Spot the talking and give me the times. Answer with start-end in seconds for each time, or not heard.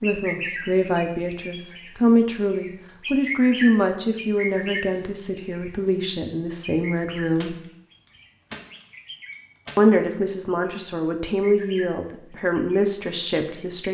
0.0-7.5, 9.8-13.8.